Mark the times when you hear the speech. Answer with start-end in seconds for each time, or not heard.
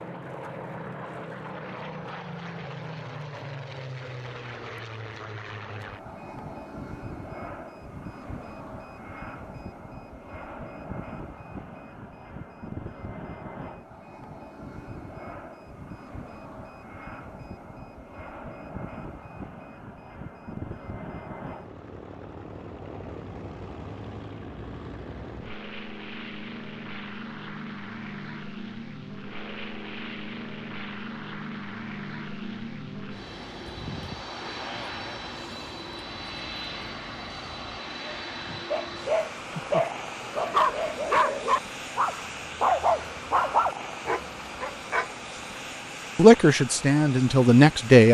46.1-48.0.